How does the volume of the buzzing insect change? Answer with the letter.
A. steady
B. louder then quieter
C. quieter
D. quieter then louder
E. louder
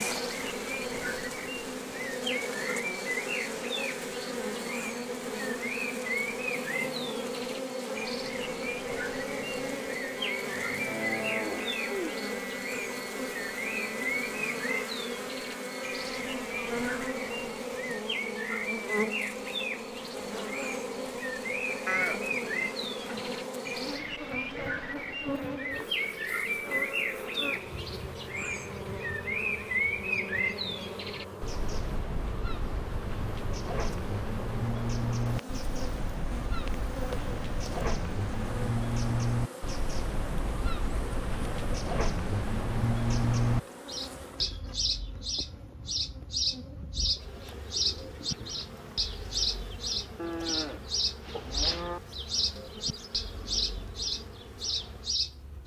C.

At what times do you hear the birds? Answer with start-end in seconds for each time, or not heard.
0.0-55.6.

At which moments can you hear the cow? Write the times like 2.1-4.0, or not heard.
10.6-12.1, 21.9-23.5, 50.1-52.0.